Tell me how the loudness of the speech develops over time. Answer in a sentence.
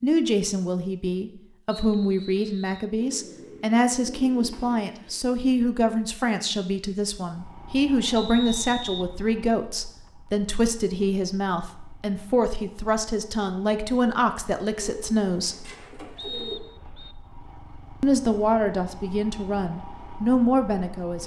The loudness of the speech stays about the same.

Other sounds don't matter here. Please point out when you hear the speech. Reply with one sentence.
You can hear the speech from 0.0 to 15.6 s and from 18.0 to 21.2 s.